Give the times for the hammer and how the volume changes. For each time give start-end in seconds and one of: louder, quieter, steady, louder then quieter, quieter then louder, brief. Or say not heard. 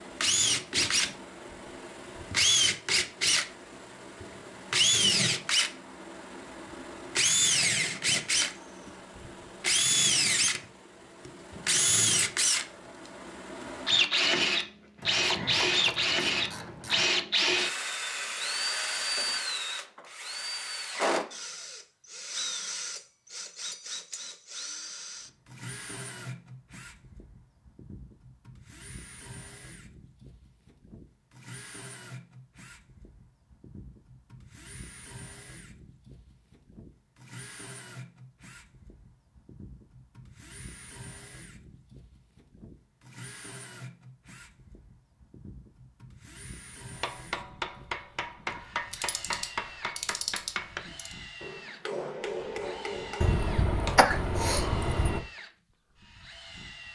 47.0-54.0 steady.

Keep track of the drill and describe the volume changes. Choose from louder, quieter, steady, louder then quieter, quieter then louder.
quieter.